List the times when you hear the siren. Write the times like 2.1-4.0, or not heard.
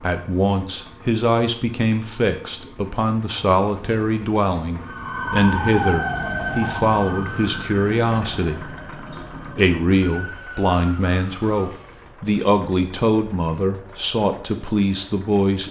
4.8-12.1.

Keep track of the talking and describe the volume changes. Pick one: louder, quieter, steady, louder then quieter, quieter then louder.
steady.